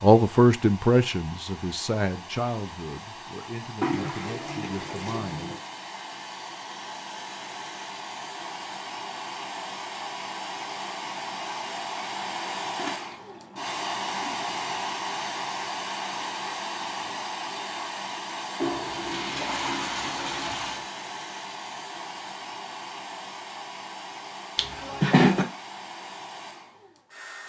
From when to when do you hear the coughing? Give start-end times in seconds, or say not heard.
24.6-25.4.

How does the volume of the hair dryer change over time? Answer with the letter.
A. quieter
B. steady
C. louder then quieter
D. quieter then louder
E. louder
C.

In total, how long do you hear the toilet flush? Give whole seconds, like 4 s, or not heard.
6 s.